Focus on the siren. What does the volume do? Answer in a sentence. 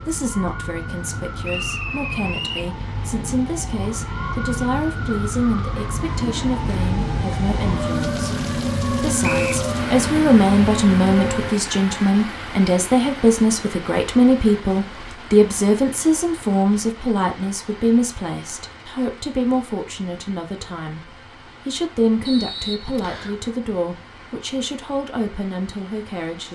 The volume of the siren goes up.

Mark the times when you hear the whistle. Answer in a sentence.
The whistle can be heard from 1.4 to 2.7 s, from 9.2 to 9.7 s and from 22.2 to 23.4 s.